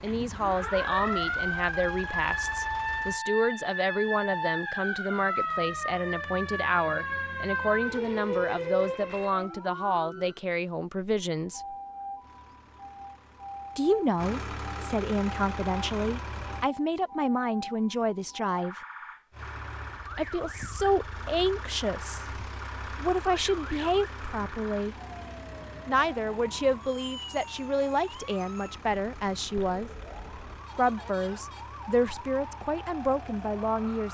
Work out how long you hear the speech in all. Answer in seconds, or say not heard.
29 s.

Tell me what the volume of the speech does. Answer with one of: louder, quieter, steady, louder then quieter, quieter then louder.
steady.